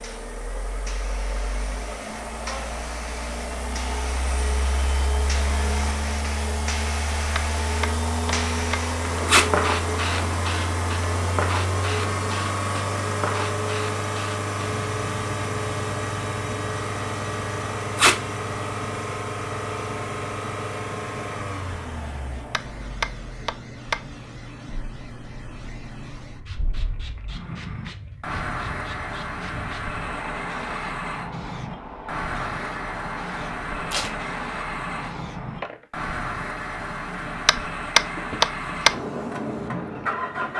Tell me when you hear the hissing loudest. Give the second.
10 s.